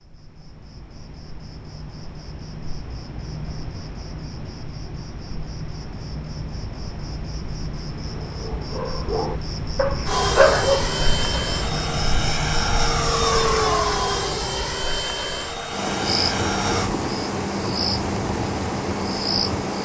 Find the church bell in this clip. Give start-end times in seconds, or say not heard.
not heard.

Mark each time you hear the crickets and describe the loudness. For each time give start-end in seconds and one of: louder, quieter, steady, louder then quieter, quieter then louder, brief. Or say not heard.
0.1-19.8 louder.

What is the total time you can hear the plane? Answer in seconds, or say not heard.
7 s.